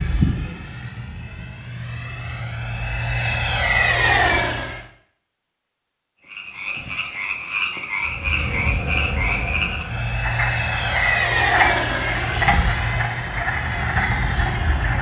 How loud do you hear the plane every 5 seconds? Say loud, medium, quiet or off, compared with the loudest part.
loud, medium, loud.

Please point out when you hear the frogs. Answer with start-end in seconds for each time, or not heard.
6.2-14.9.